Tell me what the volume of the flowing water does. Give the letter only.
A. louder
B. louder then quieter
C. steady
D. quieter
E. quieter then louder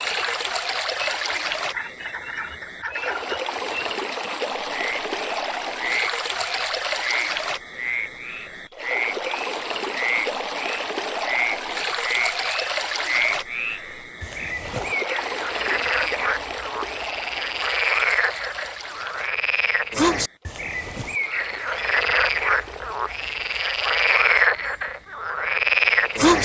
D.